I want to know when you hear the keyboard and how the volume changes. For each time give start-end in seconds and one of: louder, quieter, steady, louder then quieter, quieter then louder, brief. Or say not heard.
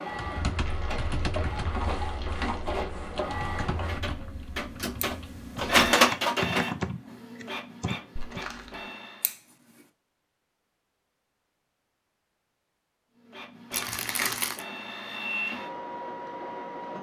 0.1-8.4 quieter then louder.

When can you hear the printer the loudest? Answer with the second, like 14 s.
6 s.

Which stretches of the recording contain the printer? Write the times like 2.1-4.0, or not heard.
0.0-9.3, 13.2-16.9.